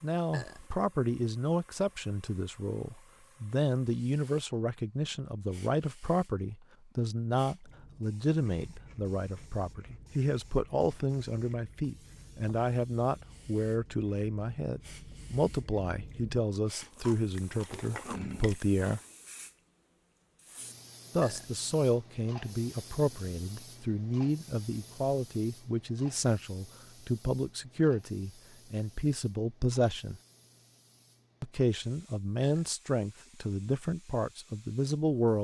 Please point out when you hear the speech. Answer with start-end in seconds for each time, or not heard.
0.0-19.0, 21.1-30.2, 31.4-35.3.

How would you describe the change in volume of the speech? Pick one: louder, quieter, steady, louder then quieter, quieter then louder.
steady.